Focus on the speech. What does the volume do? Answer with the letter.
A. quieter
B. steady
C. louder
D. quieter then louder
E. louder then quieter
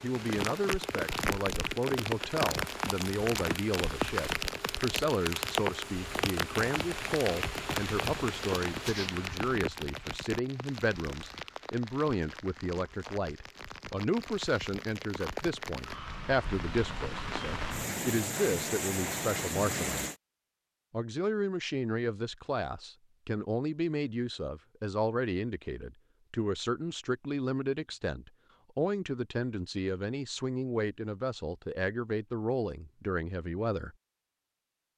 B.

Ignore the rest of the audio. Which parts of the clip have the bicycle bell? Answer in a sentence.
You can't hear the bicycle bell here.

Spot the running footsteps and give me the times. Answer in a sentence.
The running footsteps can't be heard in this clip.